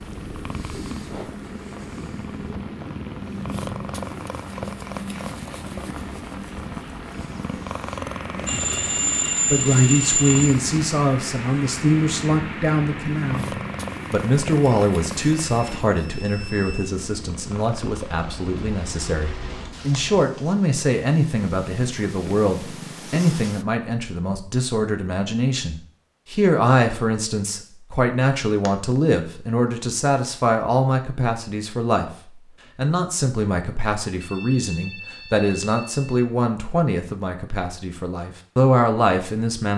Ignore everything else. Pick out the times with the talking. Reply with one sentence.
The talking can be heard from 9.5 to 13.5 s, from 14.1 to 32.1 s and from 32.8 to 39.7 s.